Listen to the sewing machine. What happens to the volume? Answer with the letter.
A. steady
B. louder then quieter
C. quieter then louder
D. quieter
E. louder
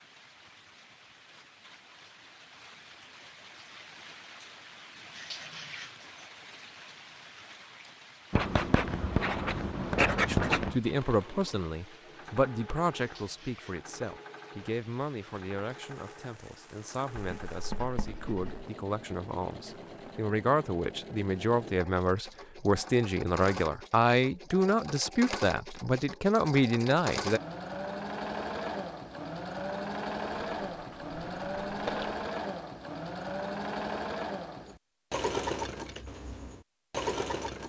E.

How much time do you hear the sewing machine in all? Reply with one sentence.
The sewing machine can be heard for 27 seconds in total.